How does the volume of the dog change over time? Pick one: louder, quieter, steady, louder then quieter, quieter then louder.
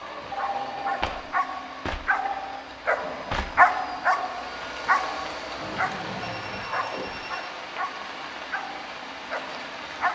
louder then quieter.